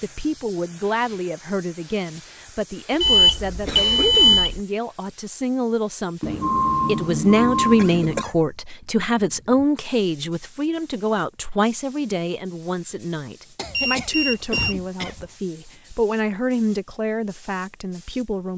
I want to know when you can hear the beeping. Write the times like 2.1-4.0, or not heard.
3.0-4.5, 6.2-8.2, 13.7-14.8.